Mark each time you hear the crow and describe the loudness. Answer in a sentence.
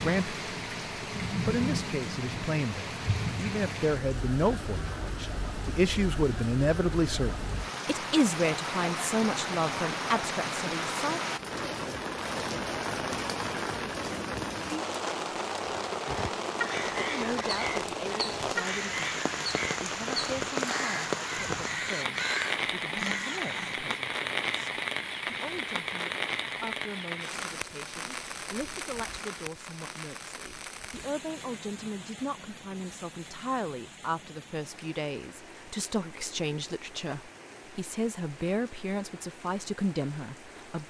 The crow can be heard from 16.1 to 23.9 s, at a steady volume.